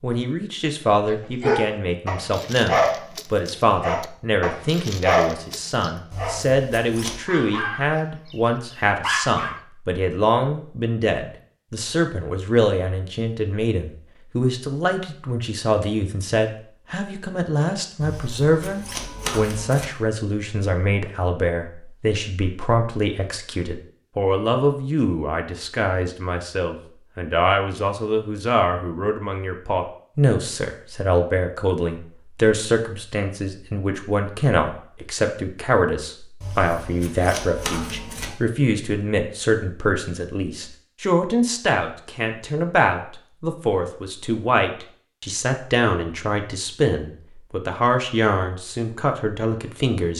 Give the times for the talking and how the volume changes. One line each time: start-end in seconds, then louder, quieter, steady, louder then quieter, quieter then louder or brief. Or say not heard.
0.0-50.1 steady.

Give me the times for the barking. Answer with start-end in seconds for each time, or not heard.
1.4-6.5, 7.2-8.3, 9.0-9.6.